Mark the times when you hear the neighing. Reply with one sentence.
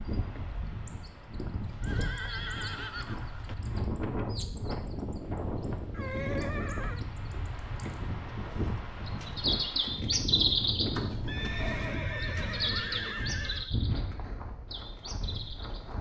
You can hear the neighing from 1.6 to 3.5 s, from 5.9 to 7.0 s and from 11.2 to 13.7 s.